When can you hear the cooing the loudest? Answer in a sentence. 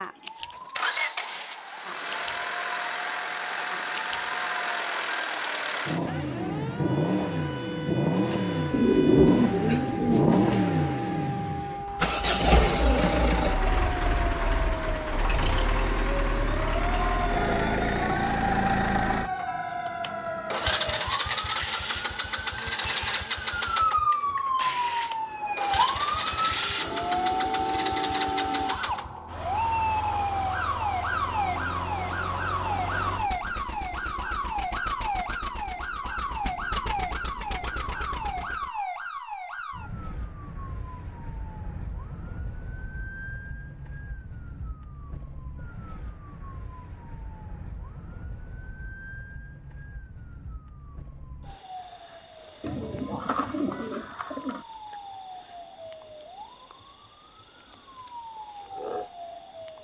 The volume of the cooing peaks at 9 seconds.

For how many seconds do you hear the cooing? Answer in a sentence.
The cooing can be heard for 4 seconds in total.